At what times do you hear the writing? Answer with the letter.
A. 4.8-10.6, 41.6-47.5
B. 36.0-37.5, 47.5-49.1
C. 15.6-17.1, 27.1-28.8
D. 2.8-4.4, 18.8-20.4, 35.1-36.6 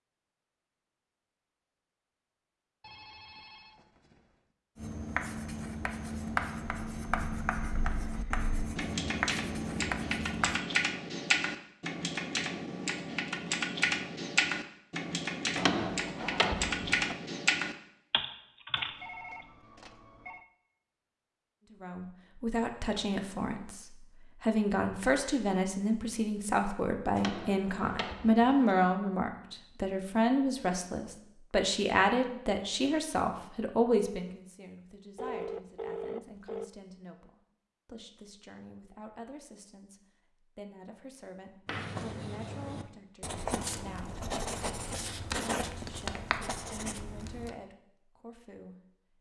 A.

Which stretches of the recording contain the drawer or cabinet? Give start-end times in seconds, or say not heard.
15.6-17.1, 27.1-28.8.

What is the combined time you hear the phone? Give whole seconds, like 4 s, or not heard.
5 s.